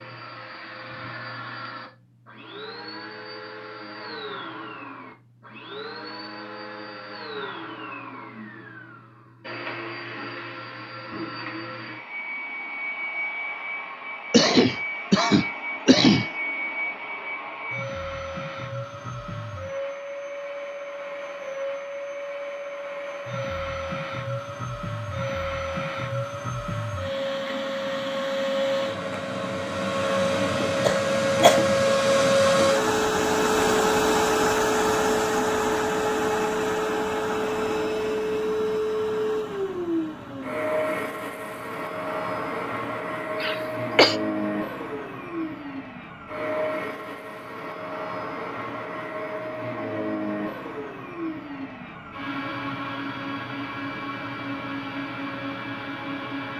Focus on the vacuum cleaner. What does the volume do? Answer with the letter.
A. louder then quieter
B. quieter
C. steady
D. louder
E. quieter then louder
A.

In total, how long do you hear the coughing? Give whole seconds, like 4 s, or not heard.
4 s.